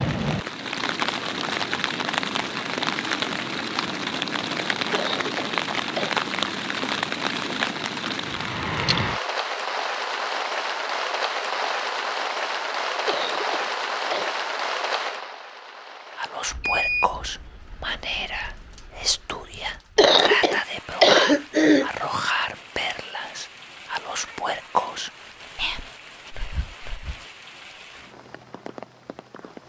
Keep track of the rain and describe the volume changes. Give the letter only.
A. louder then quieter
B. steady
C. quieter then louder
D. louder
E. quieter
E.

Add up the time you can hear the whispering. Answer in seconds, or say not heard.
11 s.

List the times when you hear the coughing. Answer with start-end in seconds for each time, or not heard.
4.9-6.2, 13.1-14.3, 19.9-21.9.